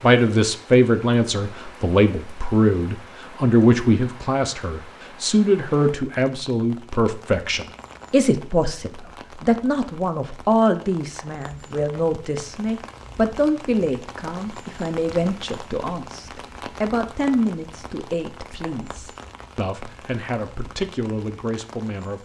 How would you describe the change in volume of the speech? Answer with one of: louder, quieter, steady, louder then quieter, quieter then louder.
quieter.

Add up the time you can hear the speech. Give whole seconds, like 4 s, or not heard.
22 s.